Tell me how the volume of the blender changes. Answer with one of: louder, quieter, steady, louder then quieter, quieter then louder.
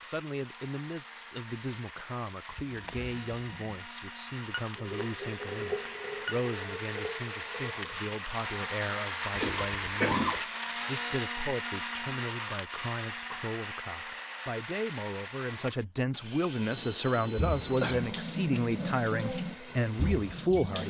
louder then quieter.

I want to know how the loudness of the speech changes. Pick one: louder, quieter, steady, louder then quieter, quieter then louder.
louder.